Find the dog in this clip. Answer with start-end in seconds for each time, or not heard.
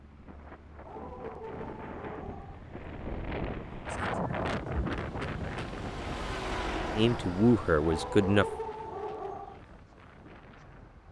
0.8-2.6, 7.8-9.6.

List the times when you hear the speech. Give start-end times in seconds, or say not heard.
7.0-8.4.